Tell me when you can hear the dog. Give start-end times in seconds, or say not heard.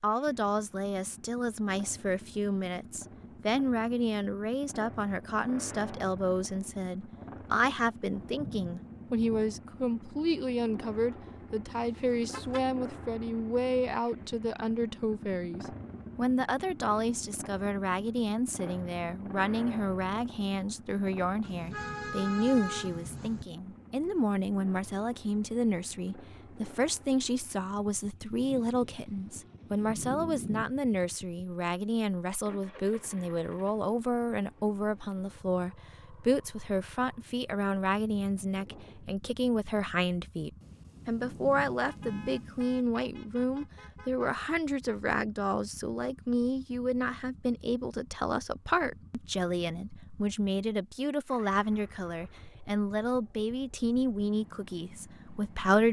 not heard.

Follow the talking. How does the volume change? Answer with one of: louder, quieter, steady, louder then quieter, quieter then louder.
steady.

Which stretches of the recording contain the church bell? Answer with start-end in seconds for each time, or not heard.
not heard.